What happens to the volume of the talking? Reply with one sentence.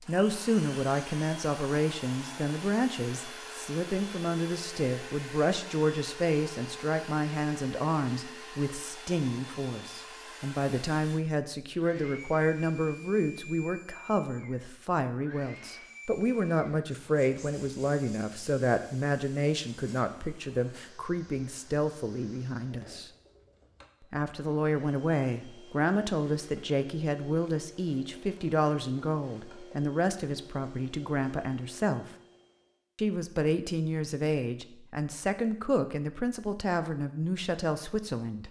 The volume of the talking stays about the same.